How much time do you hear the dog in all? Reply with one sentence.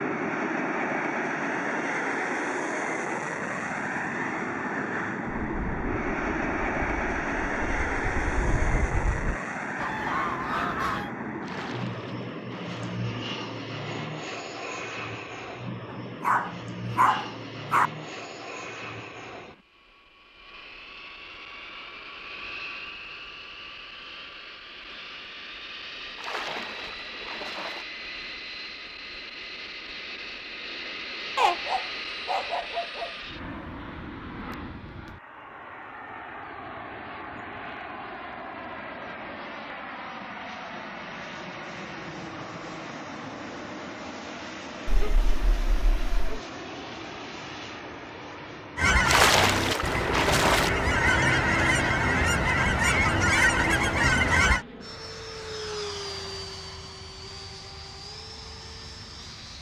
The dog can be heard for 5 seconds in total.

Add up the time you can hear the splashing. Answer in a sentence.
You can hear the splashing for 5 seconds altogether.